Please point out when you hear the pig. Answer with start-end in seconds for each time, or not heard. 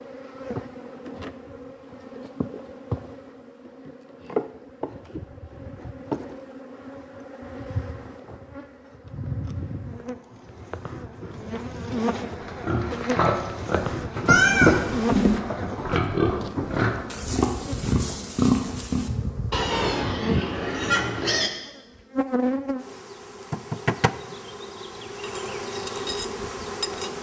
12.4-21.5.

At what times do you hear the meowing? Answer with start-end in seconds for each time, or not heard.
14.2-15.4.